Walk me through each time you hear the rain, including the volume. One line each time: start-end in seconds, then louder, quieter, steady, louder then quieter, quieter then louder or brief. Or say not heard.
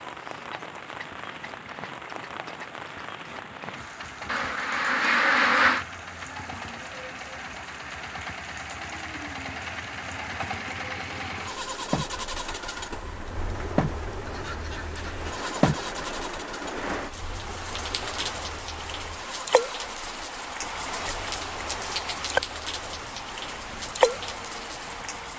0.0-25.3 louder.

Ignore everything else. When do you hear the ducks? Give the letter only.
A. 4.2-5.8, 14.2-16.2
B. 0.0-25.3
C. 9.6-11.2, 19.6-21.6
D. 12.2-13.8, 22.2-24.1
A.